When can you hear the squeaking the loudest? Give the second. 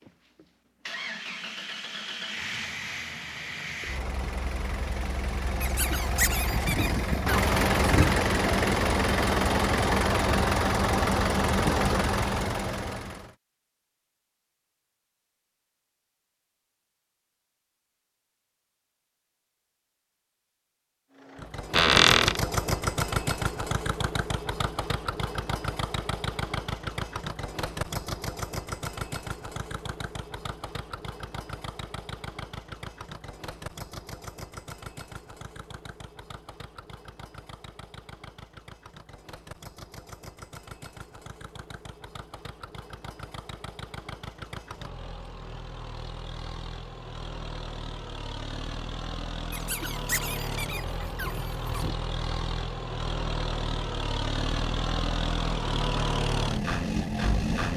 22 s.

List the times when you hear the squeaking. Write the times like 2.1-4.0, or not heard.
5.6-8.2, 21.8-22.4, 49.5-52.0.